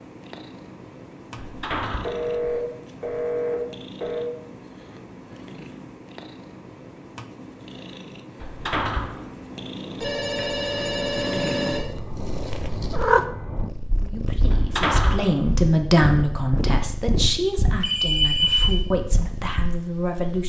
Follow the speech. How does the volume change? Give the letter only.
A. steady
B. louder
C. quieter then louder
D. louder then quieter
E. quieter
D.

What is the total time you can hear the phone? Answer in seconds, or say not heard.
5 s.